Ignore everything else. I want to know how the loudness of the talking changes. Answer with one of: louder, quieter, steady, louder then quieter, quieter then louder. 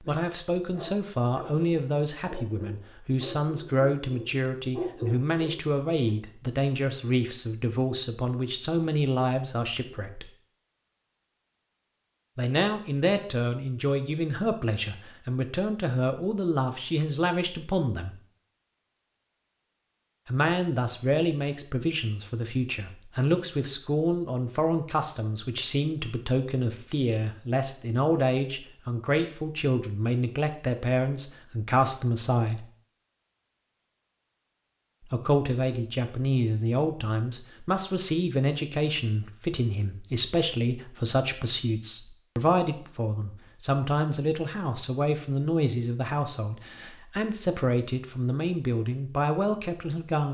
steady.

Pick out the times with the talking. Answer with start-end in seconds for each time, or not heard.
0.0-10.3, 12.3-18.2, 20.2-32.6, 35.1-50.2.